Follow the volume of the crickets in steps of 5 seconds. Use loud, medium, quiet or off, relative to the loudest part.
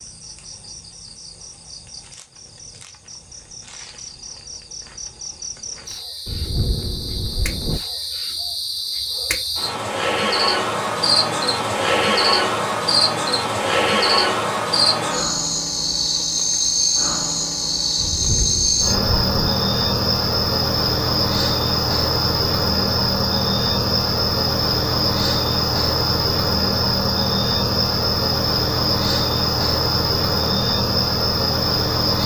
quiet, medium, loud, loud, loud, loud, loud.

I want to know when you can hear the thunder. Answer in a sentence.
The thunder can be heard from 6.2 to 7.8 s and from 17.9 to 19.5 s.